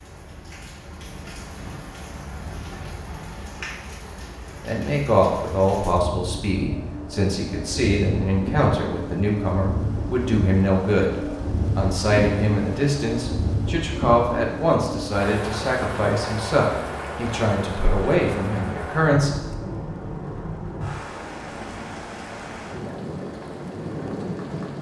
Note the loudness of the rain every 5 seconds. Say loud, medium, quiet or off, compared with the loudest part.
medium, loud, loud, loud, loud.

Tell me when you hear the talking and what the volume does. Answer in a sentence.
You can hear the talking from 4.6 to 19.3 s, at a steady volume.